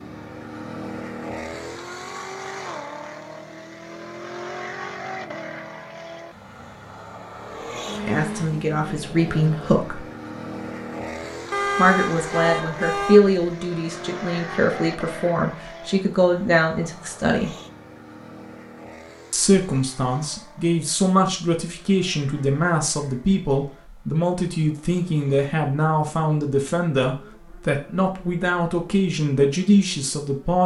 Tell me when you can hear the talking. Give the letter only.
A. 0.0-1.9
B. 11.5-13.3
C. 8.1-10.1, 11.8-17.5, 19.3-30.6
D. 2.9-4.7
C.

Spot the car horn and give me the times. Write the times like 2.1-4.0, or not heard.
11.5-13.3.